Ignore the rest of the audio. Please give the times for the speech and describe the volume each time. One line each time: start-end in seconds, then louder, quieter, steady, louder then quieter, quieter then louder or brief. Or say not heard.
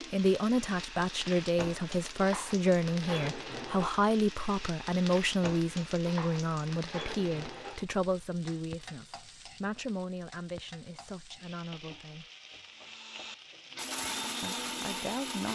0.1-12.3 quieter
14.4-15.5 brief.